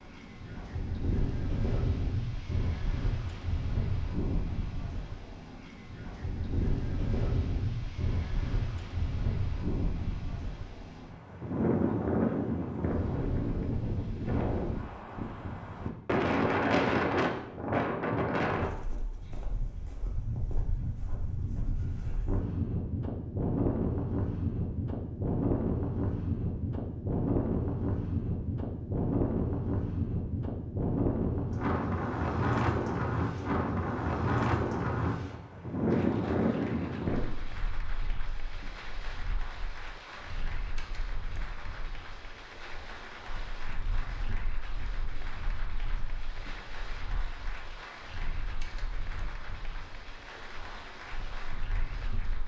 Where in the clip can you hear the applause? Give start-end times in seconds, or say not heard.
35.9-52.4.